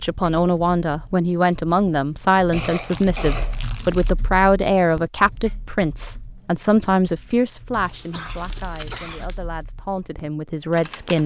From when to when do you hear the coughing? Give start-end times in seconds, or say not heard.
2.5-3.6, 8.1-9.3.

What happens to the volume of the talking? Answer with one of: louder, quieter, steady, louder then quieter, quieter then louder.
quieter.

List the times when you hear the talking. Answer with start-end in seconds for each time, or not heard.
0.0-11.2.